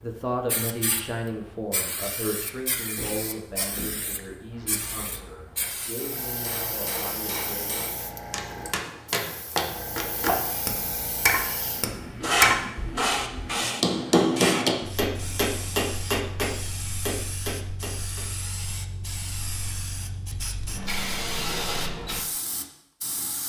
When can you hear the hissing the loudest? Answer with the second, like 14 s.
13 s.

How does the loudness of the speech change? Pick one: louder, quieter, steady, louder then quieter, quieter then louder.
quieter.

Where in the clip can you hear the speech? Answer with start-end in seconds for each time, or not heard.
0.0-7.8.